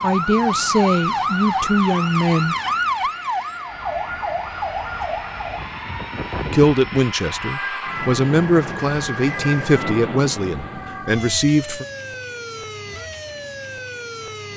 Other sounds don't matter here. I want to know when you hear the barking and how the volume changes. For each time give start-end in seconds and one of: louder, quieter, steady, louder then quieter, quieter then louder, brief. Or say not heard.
not heard.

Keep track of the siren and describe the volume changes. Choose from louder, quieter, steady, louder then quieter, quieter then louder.
quieter.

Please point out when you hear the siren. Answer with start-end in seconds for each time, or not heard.
0.0-14.5.